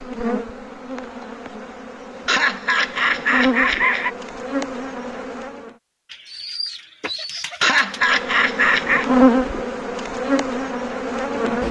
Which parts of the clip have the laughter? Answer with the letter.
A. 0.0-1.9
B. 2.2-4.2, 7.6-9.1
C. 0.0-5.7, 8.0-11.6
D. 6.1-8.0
B.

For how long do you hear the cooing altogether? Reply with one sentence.
The cooing can be heard for 2 seconds in total.